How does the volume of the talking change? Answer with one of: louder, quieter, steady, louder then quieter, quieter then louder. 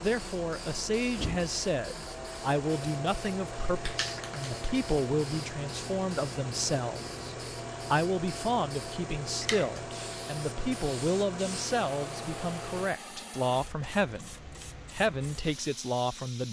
steady.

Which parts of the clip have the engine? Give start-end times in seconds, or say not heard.
0.0-12.9.